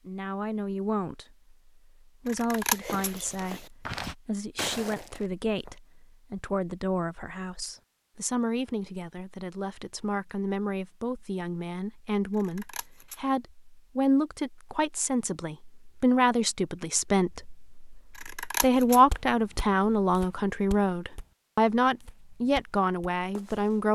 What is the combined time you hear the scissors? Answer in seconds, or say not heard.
3 s.